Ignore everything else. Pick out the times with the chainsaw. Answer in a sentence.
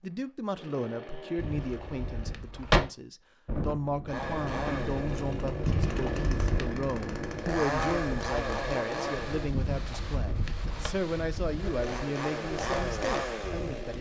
You can hear the chainsaw from 0.1 to 2.4 s, from 4.0 to 9.5 s and from 11.6 to 13.9 s.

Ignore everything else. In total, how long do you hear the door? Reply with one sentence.
You can hear the door for 4 seconds altogether.